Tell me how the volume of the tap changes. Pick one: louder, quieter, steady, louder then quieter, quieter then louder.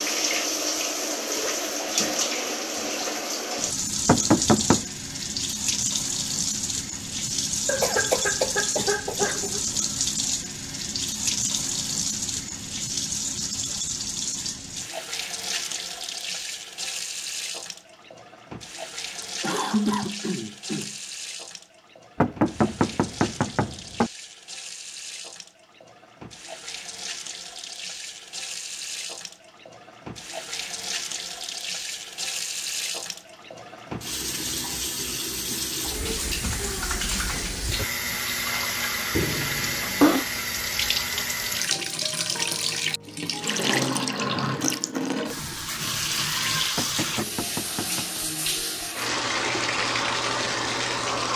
quieter then louder.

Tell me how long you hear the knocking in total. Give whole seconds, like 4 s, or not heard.
4 s.